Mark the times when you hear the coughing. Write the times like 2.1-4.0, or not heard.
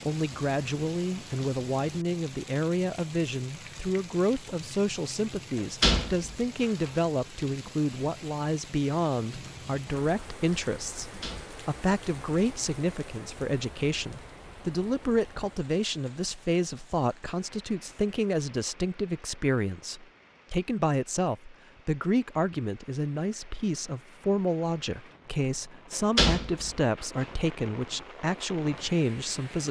not heard.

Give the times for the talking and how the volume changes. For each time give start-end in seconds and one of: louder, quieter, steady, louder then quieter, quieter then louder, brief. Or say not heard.
0.0-29.6 steady.